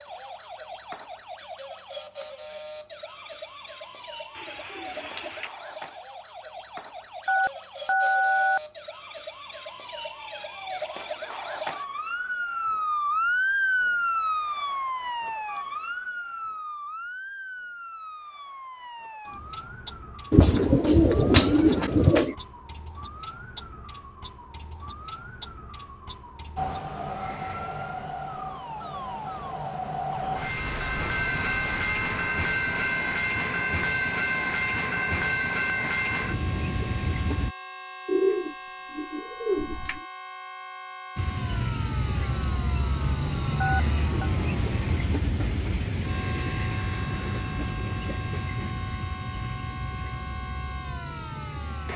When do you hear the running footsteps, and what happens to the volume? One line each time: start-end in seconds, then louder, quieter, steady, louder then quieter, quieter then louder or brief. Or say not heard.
not heard.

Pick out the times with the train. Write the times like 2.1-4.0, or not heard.
26.6-37.5, 41.1-51.9.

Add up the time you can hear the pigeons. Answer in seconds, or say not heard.
5 s.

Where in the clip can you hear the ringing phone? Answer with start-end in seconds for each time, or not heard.
7.2-8.6, 43.6-44.3.